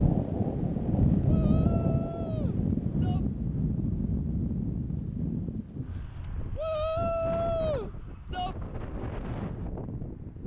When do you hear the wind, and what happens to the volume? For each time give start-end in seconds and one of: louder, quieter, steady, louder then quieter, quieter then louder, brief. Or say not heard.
0.0-10.4 quieter.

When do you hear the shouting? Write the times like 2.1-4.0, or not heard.
1.2-3.2, 6.5-8.6.